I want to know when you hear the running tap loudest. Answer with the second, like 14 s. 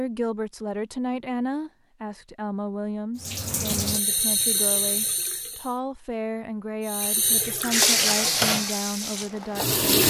8 s.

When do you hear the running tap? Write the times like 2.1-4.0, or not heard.
3.2-5.8, 6.8-10.0.